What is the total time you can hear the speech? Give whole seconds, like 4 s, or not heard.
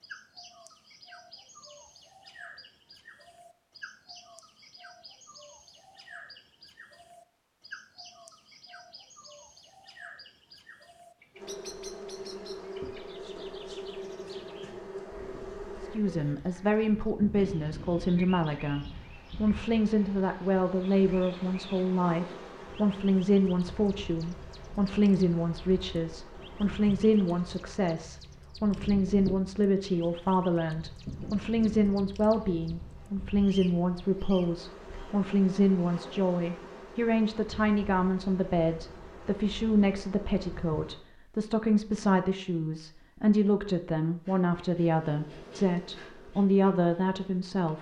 32 s.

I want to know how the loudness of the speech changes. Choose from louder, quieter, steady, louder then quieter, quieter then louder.
steady.